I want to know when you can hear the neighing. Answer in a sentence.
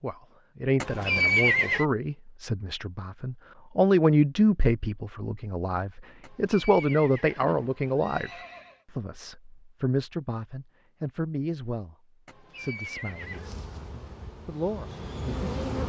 You can hear the neighing from 0.8 to 1.9 s, from 6.2 to 8.8 s and from 12.2 to 13.5 s.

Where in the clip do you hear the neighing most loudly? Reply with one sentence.
The loudest moment of the neighing is at 1 second.